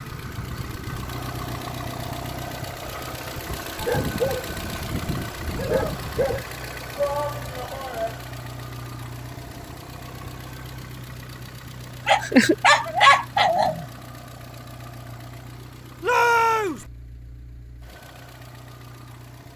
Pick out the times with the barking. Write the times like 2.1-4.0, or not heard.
3.8-6.5, 12.1-13.8.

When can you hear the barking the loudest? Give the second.
13 s.